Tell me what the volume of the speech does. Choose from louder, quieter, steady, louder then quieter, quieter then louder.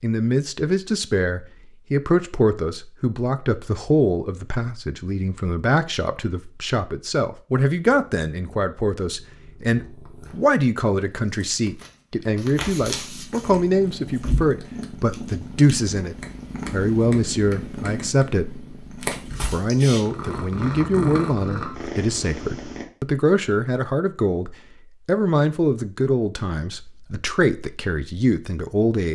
steady.